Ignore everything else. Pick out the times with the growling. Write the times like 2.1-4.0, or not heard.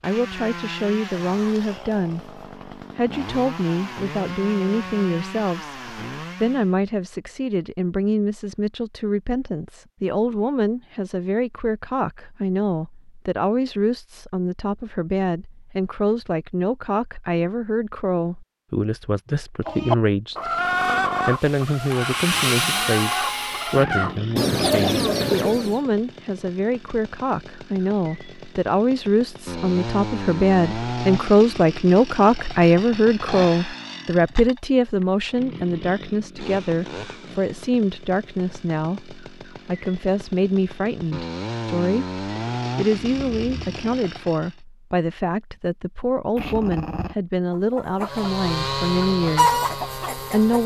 46.4-47.1.